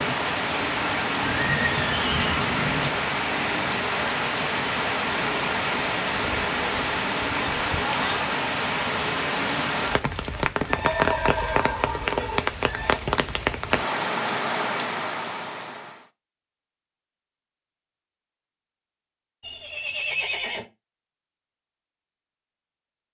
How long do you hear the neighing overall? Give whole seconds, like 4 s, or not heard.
5 s.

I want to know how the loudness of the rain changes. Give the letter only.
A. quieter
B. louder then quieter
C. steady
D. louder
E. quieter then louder
C.